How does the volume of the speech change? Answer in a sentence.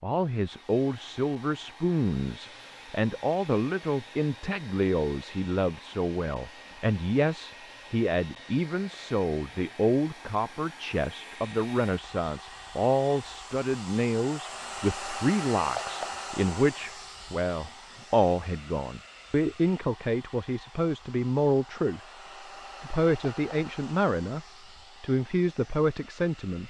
The loudness of the speech stays about the same.